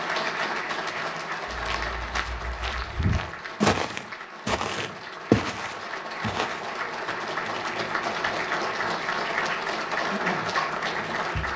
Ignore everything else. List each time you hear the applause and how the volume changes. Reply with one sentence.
The applause can be heard from 0.0 to 11.5 s, getting quieter then louder.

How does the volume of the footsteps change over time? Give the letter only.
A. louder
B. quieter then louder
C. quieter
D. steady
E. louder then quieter
E.